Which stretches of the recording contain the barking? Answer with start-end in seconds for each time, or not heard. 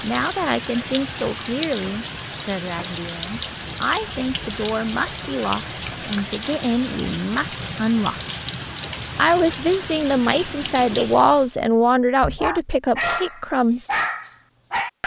12.2-15.0.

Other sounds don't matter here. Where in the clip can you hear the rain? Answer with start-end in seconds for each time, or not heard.
0.0-11.6.